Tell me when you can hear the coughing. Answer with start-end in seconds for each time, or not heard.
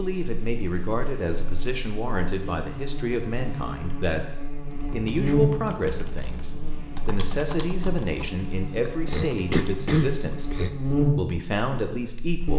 9.1-10.7.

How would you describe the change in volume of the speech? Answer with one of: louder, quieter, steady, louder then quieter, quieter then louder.
steady.